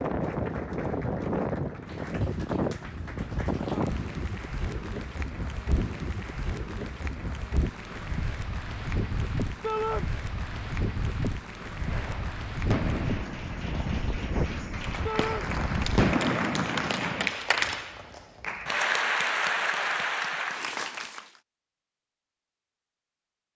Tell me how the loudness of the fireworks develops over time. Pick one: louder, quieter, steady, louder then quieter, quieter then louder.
quieter then louder.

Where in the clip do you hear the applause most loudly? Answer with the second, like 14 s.
19 s.